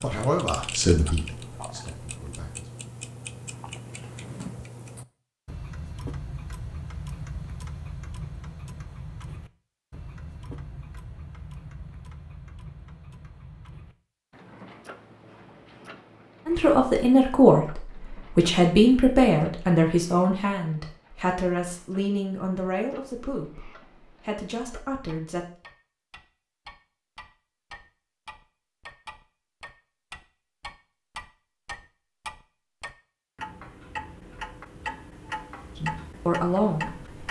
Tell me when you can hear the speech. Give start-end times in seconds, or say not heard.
0.0-2.6, 16.4-25.5, 35.8-37.2.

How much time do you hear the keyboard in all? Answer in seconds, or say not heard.
not heard.